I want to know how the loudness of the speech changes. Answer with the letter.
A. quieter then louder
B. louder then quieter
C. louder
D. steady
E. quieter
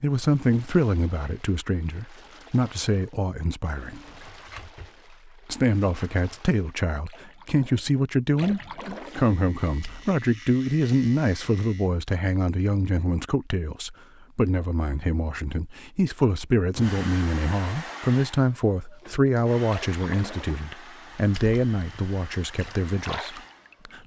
D.